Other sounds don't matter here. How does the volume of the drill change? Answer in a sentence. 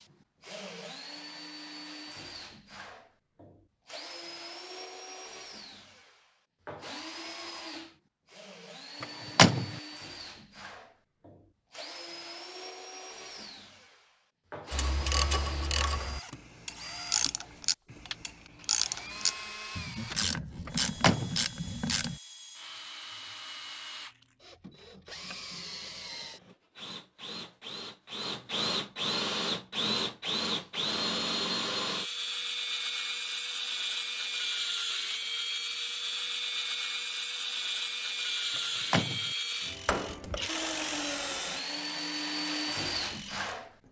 The loudness of the drill goes up.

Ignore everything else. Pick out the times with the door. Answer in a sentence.
The door can be heard from 9.0 to 9.8 s, from 20.6 to 21.4 s and from 38.5 to 39.3 s.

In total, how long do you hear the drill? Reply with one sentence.
The drill can be heard for 44 seconds in total.